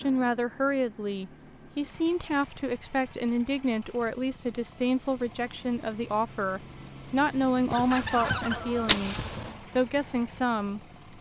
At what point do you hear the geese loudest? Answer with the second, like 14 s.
9 s.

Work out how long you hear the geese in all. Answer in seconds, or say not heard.
2 s.